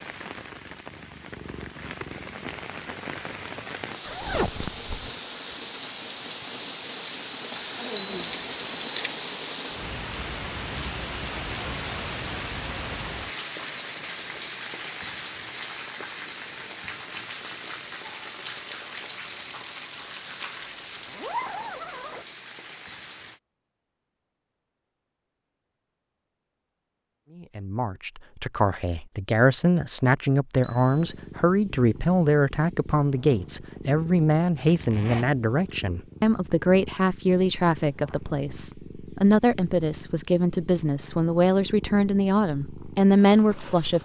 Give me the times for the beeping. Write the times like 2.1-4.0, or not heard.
8.0-9.1, 30.6-31.1.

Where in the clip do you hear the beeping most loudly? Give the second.
8 s.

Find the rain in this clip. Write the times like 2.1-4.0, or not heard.
0.0-23.4.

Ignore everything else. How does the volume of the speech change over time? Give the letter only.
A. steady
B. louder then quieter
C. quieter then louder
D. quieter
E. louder
A.